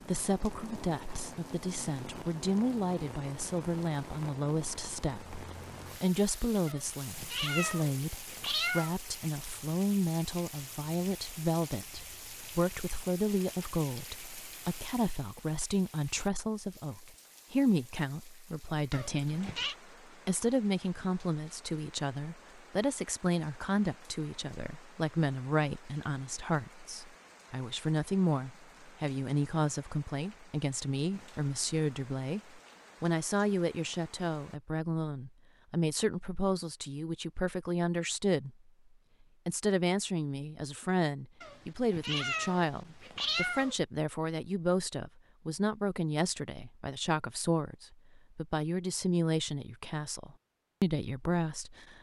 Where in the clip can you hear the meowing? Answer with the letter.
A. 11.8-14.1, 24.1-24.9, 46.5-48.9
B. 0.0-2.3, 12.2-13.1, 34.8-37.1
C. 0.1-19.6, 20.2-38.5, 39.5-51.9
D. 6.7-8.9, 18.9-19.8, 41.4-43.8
D.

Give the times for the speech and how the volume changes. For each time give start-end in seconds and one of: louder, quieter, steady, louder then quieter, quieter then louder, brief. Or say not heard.
0.1-19.6 steady
20.2-38.5 steady
39.5-51.9 steady.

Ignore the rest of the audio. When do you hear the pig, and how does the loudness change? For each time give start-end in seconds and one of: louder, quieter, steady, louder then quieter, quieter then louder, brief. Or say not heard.
not heard.